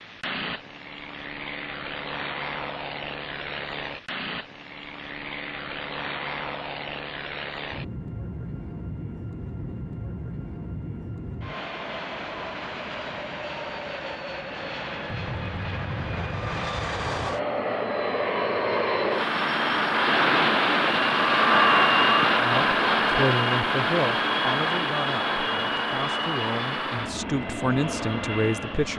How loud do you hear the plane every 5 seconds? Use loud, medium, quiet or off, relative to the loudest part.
quiet, quiet, quiet, medium, loud, medium.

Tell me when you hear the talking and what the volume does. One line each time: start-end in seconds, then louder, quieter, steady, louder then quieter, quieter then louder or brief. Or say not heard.
22.4-28.9 quieter then louder.